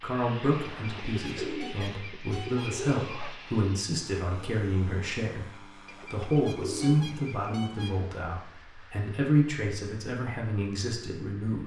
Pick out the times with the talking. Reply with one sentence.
You can hear the talking from 0.0 to 11.6 s.